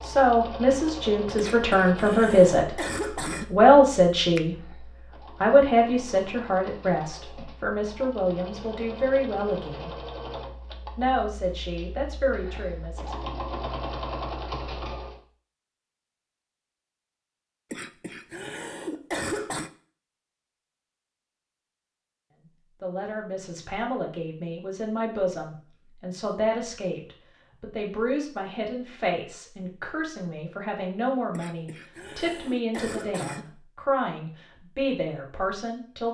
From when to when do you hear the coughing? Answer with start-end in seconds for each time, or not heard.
1.4-3.5, 17.7-19.7, 31.3-33.5.